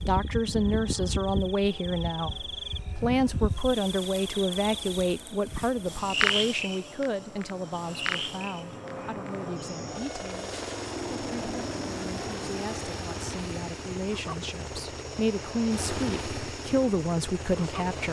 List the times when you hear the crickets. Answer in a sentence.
The crickets can be heard from 0.0 to 18.0 s.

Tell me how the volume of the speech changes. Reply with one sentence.
The loudness of the speech goes down, then up.